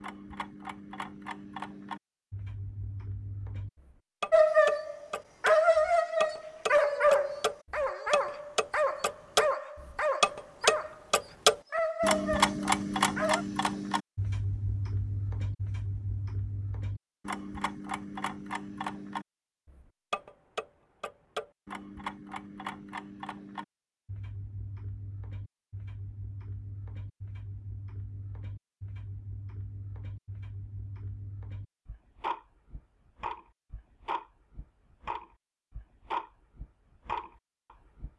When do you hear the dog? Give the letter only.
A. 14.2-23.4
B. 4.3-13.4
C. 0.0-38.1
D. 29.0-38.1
B.